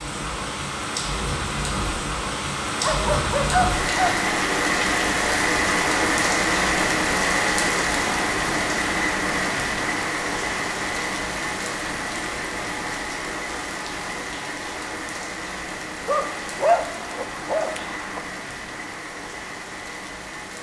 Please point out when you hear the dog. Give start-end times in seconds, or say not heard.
2.8-4.2, 16.1-18.2.